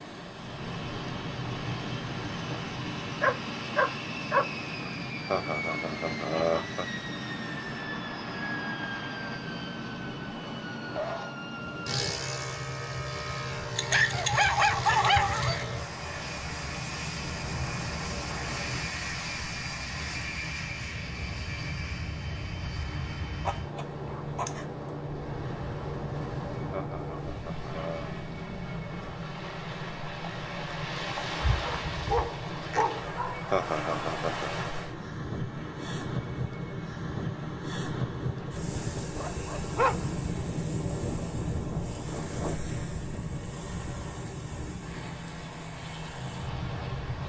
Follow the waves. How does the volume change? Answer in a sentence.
The volume of the waves goes up.